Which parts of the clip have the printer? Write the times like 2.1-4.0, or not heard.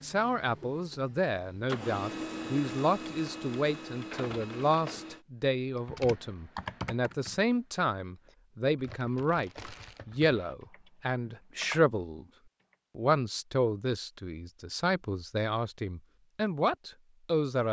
0.0-5.2.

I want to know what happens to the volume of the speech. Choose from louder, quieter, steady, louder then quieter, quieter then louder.
steady.